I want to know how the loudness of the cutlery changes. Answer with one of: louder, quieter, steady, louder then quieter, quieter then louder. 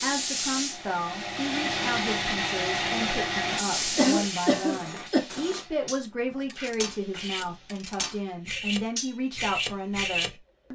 louder.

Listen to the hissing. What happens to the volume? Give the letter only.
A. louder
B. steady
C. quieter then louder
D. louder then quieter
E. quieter
E.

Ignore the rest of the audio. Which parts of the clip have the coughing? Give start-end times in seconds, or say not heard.
4.0-5.2.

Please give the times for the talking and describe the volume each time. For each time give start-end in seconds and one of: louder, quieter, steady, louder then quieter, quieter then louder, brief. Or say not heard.
0.0-10.7 steady.